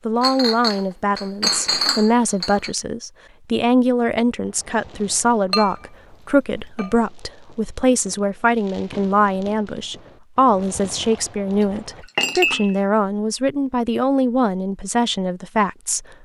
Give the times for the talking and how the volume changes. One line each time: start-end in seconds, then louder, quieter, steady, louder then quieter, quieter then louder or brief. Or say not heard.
0.1-16.1 steady.